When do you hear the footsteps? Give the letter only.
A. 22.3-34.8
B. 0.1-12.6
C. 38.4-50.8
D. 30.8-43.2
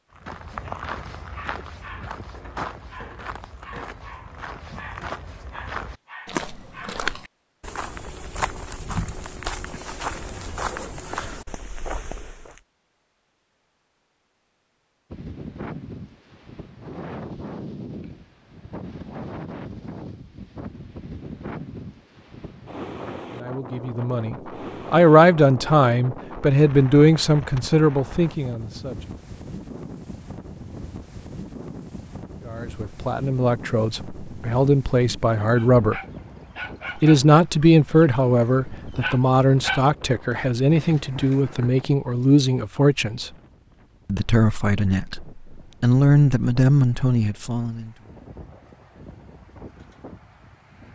B.